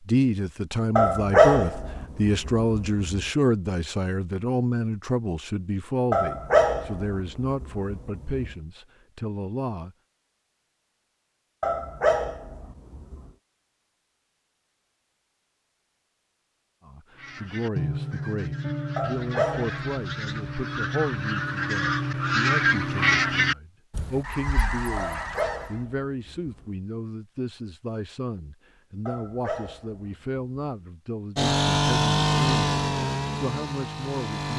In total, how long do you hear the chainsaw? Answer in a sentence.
The chainsaw can be heard for 3 seconds in total.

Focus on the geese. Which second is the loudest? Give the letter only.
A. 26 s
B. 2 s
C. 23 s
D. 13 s
C.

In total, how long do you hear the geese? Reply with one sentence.
The geese can be heard for 9 seconds in total.